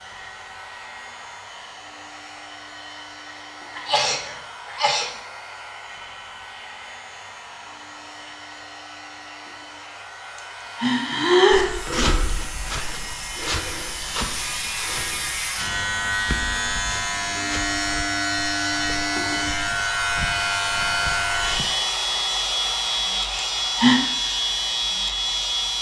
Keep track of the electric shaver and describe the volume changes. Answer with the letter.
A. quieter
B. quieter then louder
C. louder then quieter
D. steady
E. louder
E.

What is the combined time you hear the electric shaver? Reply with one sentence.
The electric shaver can be heard for 26 seconds in total.